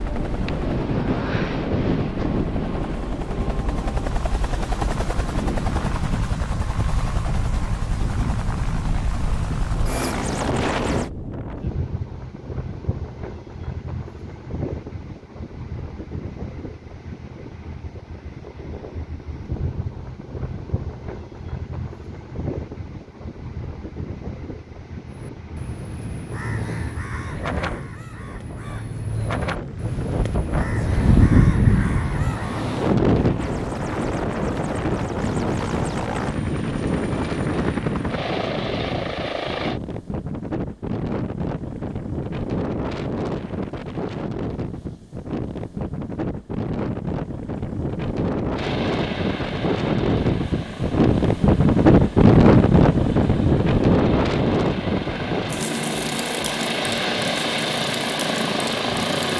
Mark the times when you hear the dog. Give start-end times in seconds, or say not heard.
not heard.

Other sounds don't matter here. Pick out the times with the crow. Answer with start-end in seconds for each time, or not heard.
25.1-32.8.